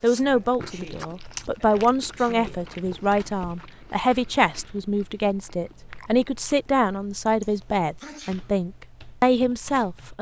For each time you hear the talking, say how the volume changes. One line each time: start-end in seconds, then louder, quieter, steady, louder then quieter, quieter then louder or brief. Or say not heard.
0.0-10.1 steady.